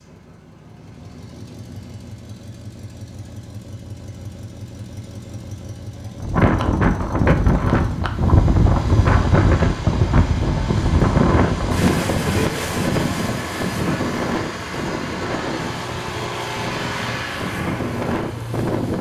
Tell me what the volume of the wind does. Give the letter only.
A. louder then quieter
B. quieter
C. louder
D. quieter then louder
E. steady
B.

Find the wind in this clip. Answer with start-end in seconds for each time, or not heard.
6.2-18.9.